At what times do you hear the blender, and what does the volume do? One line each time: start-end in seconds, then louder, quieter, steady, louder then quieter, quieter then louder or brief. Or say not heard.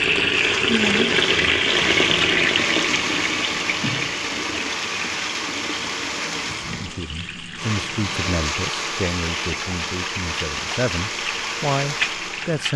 0.3-12.7 steady.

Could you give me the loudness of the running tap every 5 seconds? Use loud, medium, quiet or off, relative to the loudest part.
loud, quiet, medium.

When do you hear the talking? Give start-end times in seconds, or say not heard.
6.8-12.7.